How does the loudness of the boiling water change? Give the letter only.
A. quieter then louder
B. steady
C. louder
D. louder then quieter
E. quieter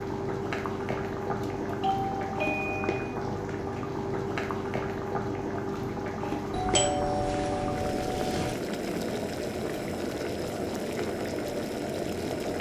B.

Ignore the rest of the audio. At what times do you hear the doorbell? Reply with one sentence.
You can hear the doorbell from 1.4 to 3.2 s and from 6.5 to 8.6 s.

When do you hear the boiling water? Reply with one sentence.
You can hear the boiling water from 0.0 to 12.5 s.